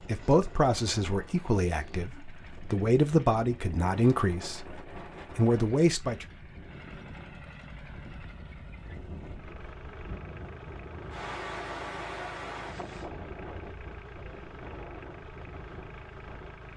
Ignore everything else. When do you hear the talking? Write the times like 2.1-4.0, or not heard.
0.1-6.2.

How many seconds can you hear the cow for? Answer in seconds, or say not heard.
not heard.